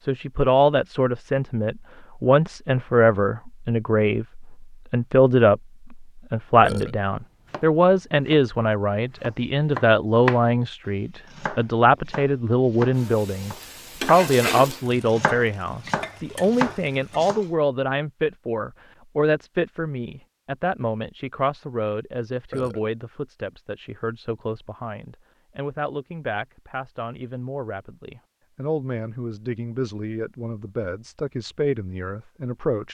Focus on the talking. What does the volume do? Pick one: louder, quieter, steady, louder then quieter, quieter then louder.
quieter.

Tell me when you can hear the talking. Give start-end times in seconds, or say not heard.
0.1-32.8.